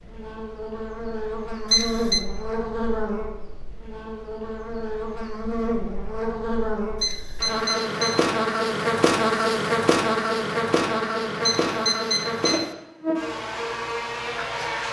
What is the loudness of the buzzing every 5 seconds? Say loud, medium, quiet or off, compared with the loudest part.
medium, loud, loud.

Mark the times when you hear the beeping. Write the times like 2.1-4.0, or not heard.
1.7-2.2, 7.0-8.3, 11.4-12.7.